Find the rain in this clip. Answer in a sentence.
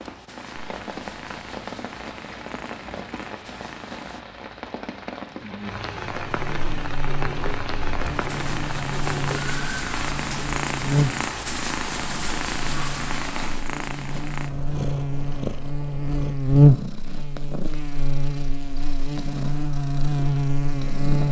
The rain can be heard from 0.0 to 13.6 s.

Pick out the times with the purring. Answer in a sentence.
The purring can be heard from 0.0 to 4.2 s and from 8.0 to 21.2 s.